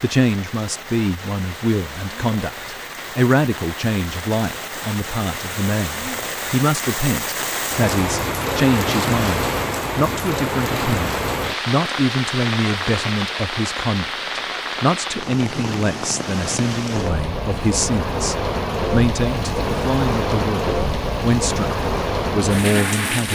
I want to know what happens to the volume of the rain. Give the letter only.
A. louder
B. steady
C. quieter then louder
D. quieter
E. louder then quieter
A.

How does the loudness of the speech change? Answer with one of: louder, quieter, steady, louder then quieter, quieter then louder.
steady.